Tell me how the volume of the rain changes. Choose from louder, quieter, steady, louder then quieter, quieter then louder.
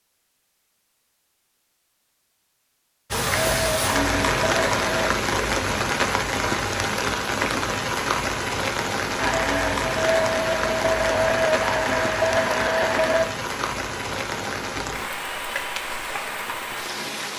quieter.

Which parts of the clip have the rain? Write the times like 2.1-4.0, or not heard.
3.1-17.3.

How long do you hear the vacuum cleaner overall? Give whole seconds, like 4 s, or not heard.
6 s.